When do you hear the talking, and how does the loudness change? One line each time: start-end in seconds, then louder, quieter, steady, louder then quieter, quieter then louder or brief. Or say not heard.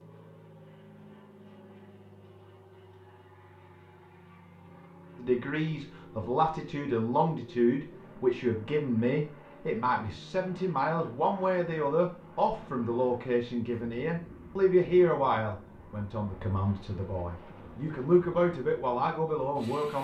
5.2-19.9 steady.